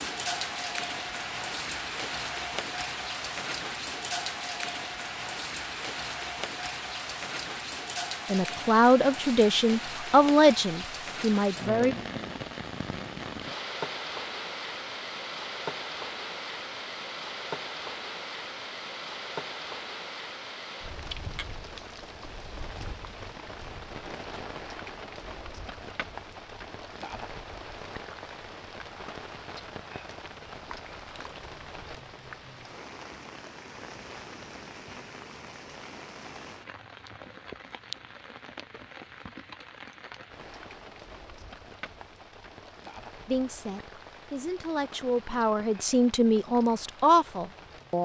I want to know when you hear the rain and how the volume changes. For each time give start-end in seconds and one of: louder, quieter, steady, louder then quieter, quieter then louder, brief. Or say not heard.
0.0-48.0 quieter.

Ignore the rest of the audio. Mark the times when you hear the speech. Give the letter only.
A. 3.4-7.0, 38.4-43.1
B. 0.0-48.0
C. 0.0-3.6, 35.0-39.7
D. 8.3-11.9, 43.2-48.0
D.